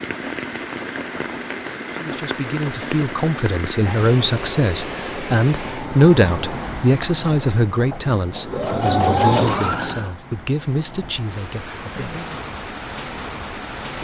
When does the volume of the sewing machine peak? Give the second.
9 s.